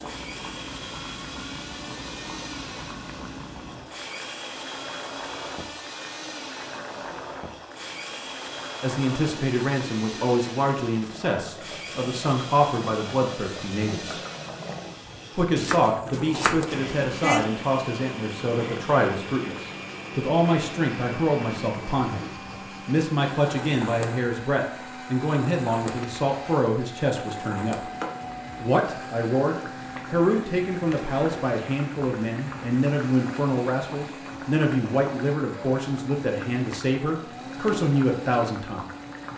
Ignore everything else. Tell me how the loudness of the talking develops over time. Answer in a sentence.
The volume of the talking stays about the same.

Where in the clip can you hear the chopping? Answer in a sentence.
You can hear the chopping from 15.6 to 17.4 s.